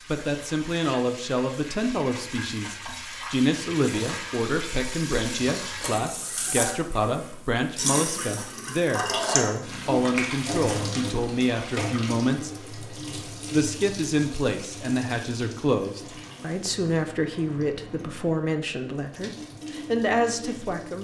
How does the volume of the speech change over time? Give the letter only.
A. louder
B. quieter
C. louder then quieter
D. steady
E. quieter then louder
D.